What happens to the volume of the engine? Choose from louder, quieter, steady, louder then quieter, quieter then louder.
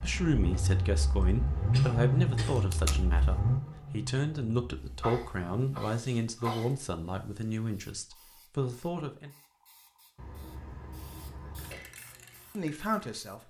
louder then quieter.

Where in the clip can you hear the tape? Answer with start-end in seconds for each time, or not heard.
2.5-3.3.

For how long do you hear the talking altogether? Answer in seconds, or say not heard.
10 s.